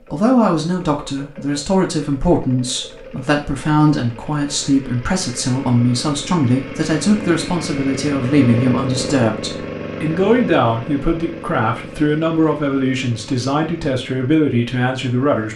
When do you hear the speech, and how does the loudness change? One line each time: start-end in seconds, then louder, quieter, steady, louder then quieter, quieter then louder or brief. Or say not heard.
0.1-15.5 steady.